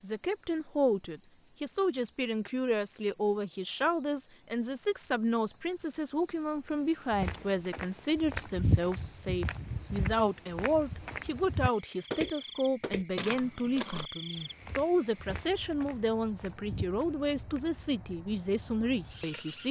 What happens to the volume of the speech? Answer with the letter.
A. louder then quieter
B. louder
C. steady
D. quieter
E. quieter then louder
C.